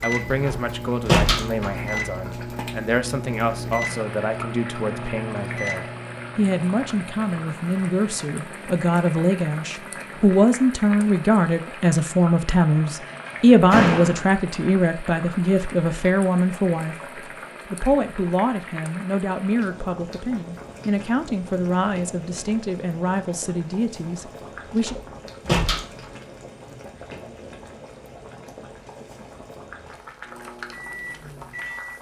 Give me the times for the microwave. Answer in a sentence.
The microwave can be heard from 0.0 to 10.5 s and from 29.9 to 31.9 s.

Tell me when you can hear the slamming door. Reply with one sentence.
The slamming door can be heard from 0.5 to 1.9 s, from 13.1 to 14.3 s and from 24.9 to 25.8 s.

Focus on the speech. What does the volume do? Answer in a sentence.
The loudness of the speech goes up, then down.